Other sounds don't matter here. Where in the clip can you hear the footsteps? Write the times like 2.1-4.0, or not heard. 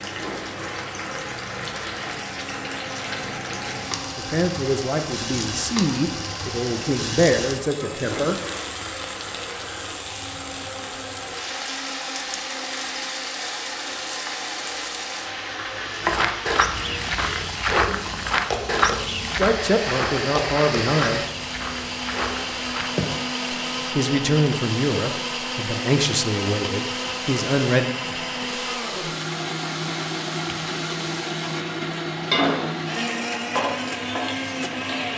16.0-23.3.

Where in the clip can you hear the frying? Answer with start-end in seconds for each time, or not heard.
0.0-35.1.